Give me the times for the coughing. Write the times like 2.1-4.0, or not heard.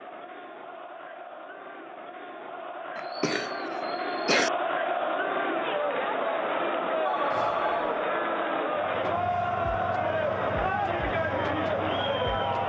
3.0-4.5, 7.3-8.0.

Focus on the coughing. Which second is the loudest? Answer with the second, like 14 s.
4 s.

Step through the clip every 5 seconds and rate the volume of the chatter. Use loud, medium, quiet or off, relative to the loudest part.
medium, loud, loud.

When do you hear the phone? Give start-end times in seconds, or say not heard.
7.0-8.0.